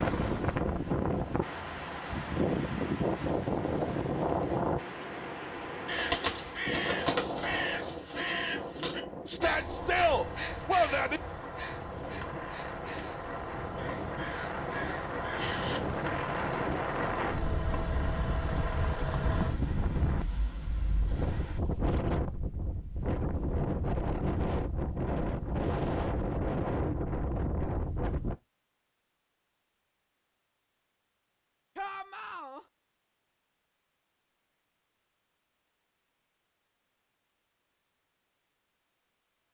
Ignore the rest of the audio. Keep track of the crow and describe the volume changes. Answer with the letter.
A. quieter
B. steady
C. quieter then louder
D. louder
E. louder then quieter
A.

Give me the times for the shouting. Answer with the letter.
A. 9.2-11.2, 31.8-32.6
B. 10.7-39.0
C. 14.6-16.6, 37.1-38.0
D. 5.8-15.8
A.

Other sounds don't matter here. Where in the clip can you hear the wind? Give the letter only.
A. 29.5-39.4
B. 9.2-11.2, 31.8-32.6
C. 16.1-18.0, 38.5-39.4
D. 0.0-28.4
D.